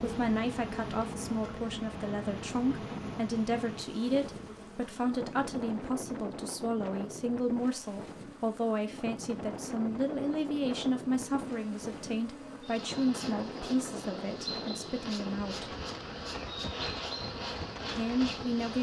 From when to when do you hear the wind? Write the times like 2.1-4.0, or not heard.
0.0-18.7.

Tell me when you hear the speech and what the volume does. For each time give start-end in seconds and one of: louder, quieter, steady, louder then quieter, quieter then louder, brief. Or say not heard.
0.0-15.8 steady
17.9-18.7 brief.